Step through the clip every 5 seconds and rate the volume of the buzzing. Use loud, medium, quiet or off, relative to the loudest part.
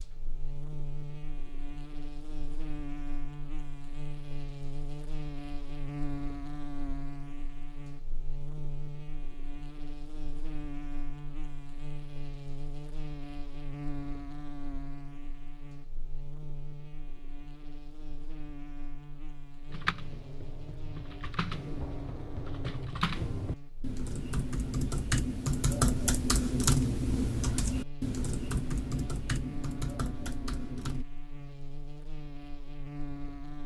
loud, loud, loud, medium, medium, loud, loud.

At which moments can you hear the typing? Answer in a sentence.
The typing can be heard from 19.7 to 31.1 s.